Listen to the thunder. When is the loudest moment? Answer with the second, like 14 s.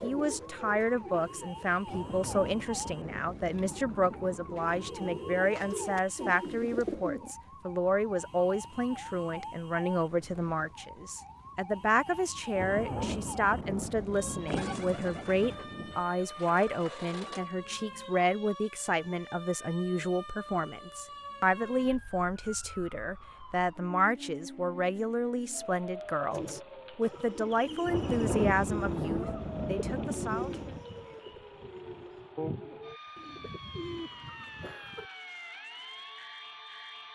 28 s.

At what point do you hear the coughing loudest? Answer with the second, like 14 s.
35 s.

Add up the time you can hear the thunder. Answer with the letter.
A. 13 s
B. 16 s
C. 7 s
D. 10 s
D.